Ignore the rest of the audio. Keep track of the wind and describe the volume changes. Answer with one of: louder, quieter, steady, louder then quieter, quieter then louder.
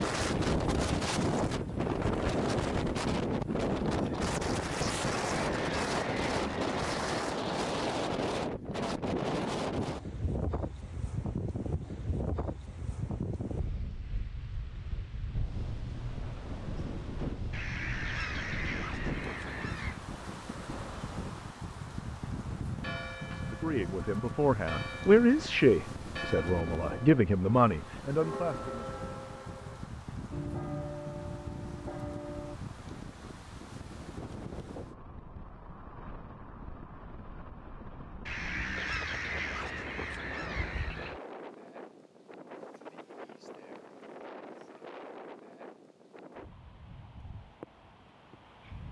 quieter.